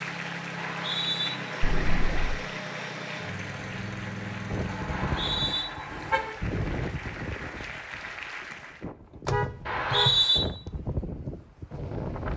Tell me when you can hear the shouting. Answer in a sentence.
You can't hear the shouting here.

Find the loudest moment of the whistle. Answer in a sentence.
The loudest moment of the whistle is at 10 seconds.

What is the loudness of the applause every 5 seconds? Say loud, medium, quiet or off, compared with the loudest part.
loud, loud, off.